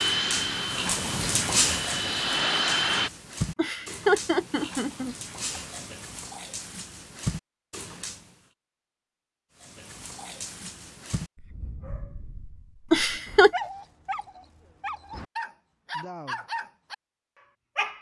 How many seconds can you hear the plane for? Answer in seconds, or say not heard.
3 s.